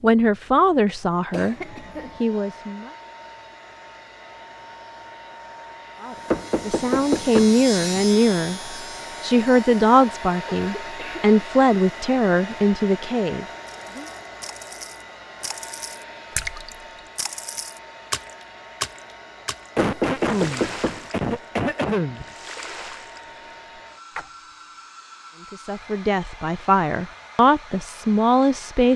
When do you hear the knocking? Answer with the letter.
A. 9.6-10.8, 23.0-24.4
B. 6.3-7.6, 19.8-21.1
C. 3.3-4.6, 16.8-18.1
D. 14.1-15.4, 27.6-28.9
B.